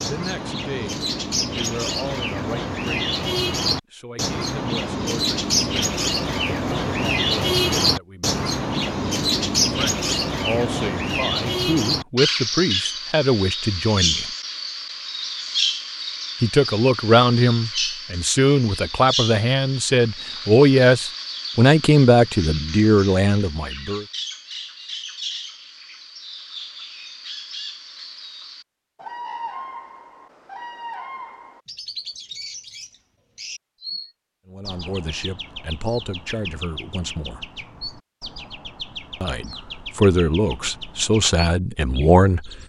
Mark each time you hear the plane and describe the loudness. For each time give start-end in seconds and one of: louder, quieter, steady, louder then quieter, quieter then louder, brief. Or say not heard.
not heard.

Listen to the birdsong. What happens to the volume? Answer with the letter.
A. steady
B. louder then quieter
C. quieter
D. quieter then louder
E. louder
C.